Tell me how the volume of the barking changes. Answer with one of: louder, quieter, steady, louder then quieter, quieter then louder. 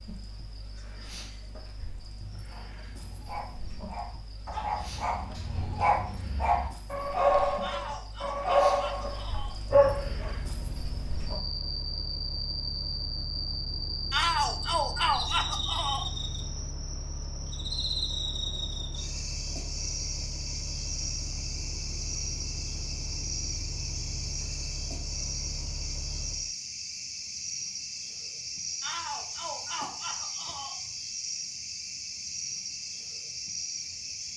louder.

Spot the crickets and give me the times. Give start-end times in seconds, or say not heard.
0.0-34.3.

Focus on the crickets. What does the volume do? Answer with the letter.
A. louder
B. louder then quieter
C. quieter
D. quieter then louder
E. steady
A.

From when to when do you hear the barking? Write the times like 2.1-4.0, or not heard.
2.5-10.3.